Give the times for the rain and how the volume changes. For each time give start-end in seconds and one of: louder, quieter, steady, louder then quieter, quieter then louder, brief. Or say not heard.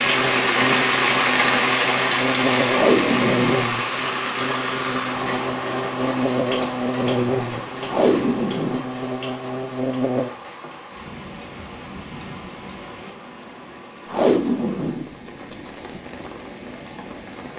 0.0-17.5 quieter.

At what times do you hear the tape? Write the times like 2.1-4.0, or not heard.
2.7-3.6, 7.8-8.8, 14.1-16.0.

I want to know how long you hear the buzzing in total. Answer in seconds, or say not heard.
10 s.